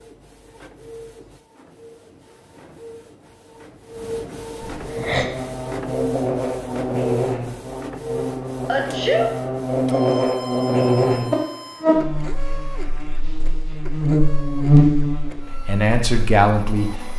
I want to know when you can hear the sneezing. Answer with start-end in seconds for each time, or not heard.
4.8-5.2, 8.7-9.3.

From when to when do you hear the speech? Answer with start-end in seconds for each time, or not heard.
15.7-17.1.